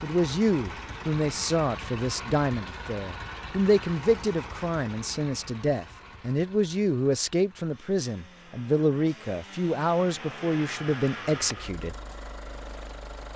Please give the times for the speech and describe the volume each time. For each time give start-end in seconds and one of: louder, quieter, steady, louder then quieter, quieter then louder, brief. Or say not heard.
0.0-11.9 steady.